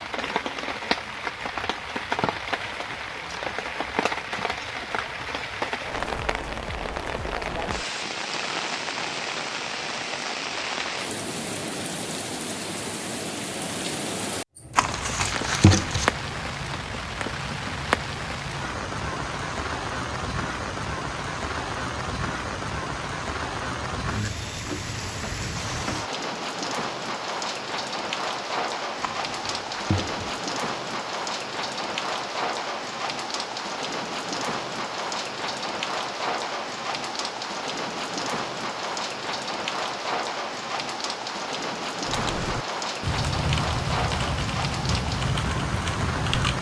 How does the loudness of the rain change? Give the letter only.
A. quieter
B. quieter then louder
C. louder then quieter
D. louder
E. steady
E.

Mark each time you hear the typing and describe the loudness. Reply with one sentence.
You can hear the typing from 42.0 to 46.5 s, at a steady volume.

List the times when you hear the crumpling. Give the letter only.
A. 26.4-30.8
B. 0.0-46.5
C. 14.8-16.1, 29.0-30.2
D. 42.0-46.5
C.